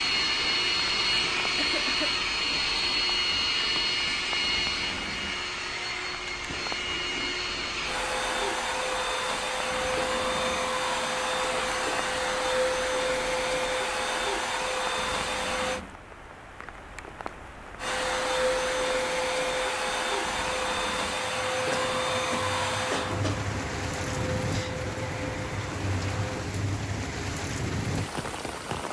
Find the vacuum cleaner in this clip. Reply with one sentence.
The vacuum cleaner can be heard from 0.0 to 15.8 s and from 17.8 to 26.5 s.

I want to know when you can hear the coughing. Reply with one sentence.
The coughing can be heard from 1.6 to 2.1 s and from 21.7 to 23.4 s.